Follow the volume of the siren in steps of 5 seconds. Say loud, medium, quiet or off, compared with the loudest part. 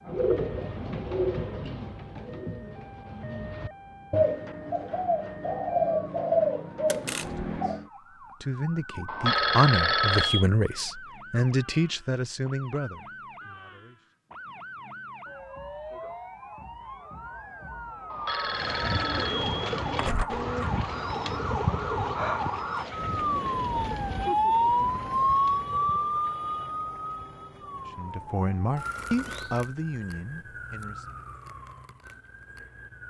quiet, quiet, quiet, medium, loud, loud, quiet.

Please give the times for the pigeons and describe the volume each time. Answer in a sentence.
The pigeons can be heard from 0.1 to 7.8 s, getting quieter then louder; and from 18.4 to 26.2 s, getting quieter.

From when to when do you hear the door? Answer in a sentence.
The door can be heard from 6.8 to 7.5 s and from 19.9 to 20.7 s.